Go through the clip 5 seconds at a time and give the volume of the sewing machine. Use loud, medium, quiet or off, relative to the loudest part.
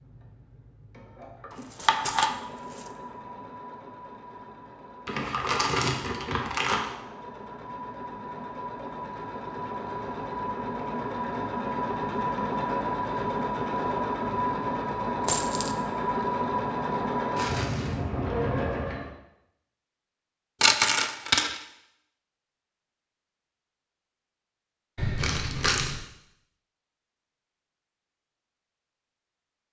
quiet, medium, loud, loud, off, off.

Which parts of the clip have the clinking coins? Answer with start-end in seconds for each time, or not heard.
1.8-2.4, 15.2-15.8, 20.6-21.6.